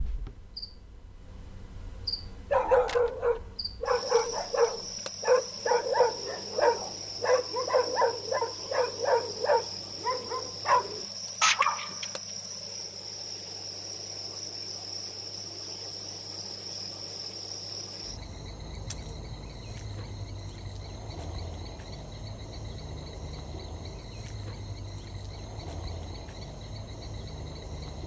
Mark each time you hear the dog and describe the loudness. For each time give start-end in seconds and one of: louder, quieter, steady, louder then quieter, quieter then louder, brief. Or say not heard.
2.5-12.1 steady.